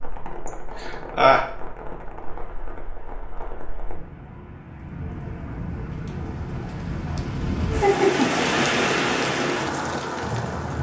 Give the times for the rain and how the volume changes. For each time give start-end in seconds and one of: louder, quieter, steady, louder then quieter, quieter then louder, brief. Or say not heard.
0.0-10.7 louder.